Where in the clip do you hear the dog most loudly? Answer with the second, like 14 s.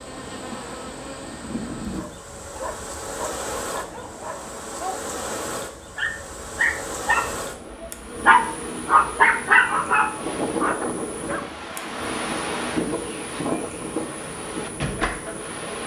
9 s.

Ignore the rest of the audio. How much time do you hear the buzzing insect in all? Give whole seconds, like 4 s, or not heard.
16 s.